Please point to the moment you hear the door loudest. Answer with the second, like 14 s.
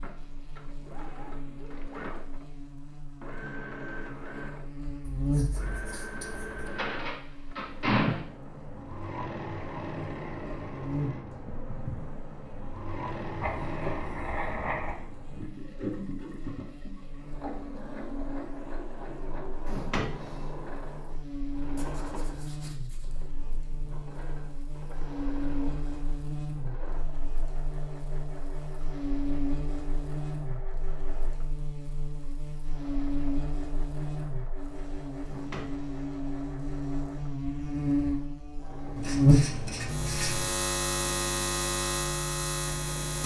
8 s.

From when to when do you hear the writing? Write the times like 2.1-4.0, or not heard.
5.0-6.7, 13.4-14.9, 21.8-23.2, 39.0-40.5.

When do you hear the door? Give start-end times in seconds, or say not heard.
6.7-8.2, 19.6-20.4, 35.2-35.9.